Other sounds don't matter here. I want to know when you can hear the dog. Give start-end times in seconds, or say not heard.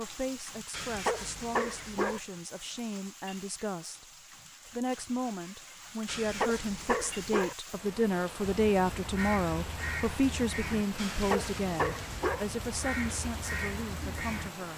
0.7-2.2, 6.0-7.5, 10.9-12.4.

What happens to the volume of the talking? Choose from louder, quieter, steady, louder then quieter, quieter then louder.
louder then quieter.